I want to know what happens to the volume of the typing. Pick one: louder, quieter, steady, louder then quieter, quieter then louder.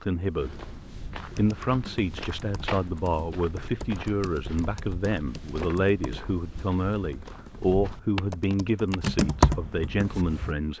louder.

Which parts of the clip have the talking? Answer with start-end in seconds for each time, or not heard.
0.0-0.7, 1.4-10.7.